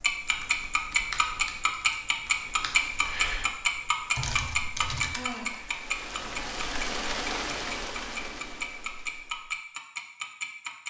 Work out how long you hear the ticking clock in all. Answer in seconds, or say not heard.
11 s.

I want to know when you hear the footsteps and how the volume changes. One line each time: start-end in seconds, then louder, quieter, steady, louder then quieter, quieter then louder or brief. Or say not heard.
not heard.